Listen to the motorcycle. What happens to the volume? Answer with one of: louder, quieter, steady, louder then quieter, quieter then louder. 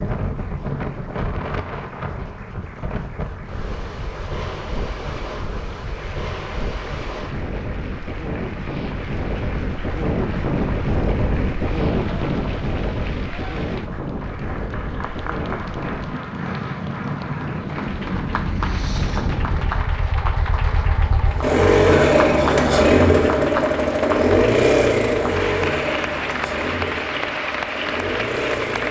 louder then quieter.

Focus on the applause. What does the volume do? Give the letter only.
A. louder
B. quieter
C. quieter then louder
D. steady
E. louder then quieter
A.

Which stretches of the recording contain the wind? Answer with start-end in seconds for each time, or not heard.
0.0-19.9.